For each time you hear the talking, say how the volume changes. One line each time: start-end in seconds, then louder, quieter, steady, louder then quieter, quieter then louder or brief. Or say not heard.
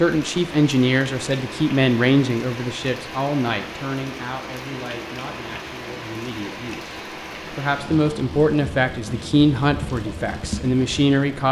0.0-11.4 quieter then louder.